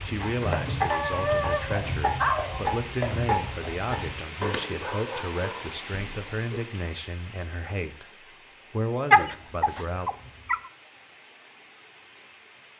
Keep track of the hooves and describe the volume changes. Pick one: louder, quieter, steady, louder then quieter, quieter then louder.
quieter then louder.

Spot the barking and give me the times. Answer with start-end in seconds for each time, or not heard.
0.9-2.6, 4.4-6.6, 9.1-10.6.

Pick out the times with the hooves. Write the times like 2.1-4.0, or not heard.
0.0-4.2.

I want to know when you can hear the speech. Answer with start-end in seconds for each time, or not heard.
0.0-10.1.